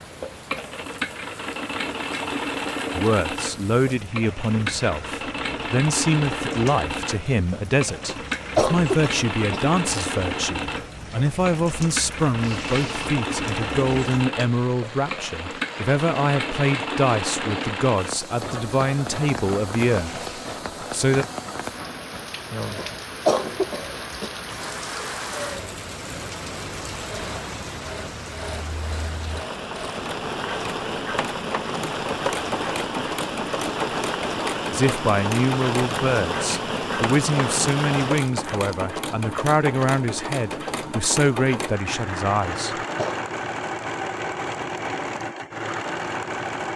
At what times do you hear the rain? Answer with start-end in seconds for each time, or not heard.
0.0-38.3.